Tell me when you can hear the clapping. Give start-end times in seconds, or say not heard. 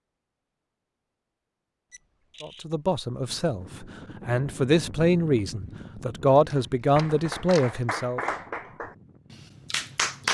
6.5-10.2.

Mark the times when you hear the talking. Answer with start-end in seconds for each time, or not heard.
2.4-8.2.